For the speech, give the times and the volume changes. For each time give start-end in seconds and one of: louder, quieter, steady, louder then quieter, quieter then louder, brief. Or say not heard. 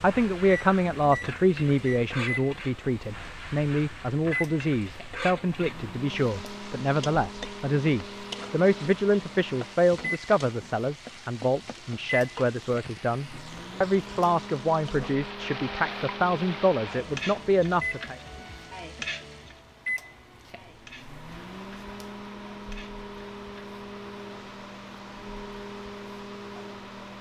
0.0-18.1 steady.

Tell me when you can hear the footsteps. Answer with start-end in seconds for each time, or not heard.
not heard.